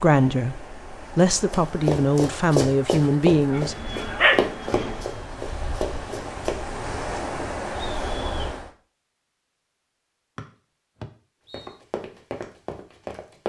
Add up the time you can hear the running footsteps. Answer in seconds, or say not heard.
7 s.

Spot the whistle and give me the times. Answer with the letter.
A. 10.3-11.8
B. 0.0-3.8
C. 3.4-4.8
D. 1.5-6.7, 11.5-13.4
A.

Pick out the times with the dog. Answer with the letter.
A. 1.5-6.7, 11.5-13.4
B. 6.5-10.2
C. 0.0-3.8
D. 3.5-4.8
D.